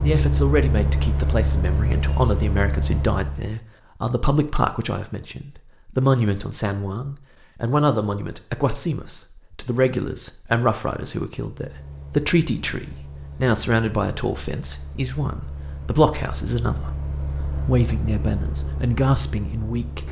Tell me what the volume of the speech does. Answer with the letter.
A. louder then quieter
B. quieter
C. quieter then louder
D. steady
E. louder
D.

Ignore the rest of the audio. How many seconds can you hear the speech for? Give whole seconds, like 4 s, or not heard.
20 s.